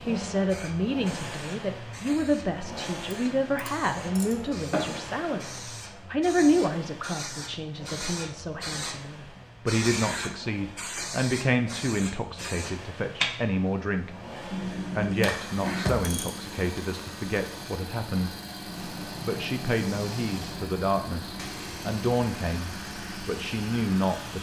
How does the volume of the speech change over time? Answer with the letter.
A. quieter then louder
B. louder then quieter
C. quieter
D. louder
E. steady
E.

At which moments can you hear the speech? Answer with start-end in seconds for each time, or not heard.
0.0-14.1, 14.9-18.3, 19.2-24.3.